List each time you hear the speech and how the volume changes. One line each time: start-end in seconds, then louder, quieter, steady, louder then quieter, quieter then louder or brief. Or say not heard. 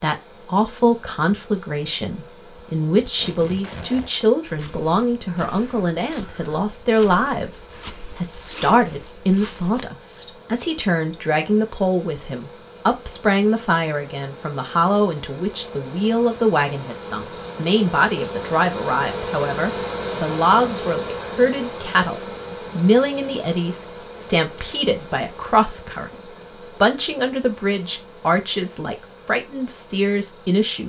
0.0-30.8 steady.